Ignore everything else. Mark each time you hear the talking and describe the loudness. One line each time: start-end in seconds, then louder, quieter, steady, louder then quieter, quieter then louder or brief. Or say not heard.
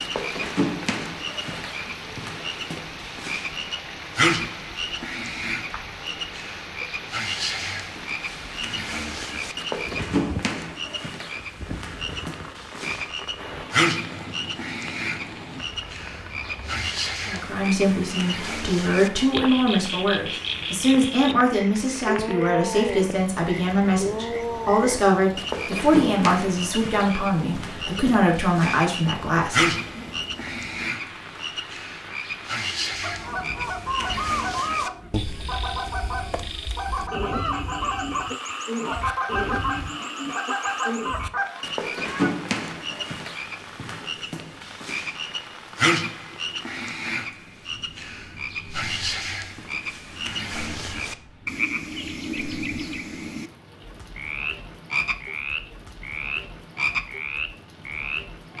17.2-30.1 steady.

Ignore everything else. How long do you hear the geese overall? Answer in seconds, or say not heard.
9 s.